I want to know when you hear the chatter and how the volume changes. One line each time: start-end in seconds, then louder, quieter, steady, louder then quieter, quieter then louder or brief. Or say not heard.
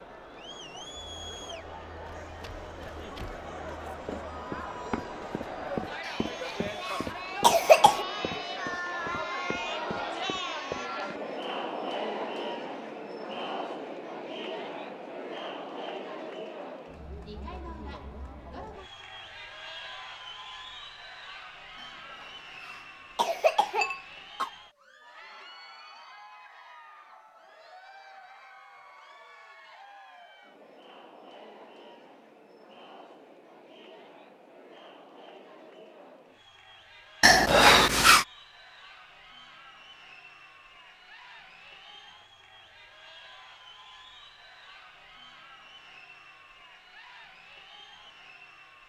0.0-48.8 quieter.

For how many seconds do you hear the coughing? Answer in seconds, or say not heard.
6 s.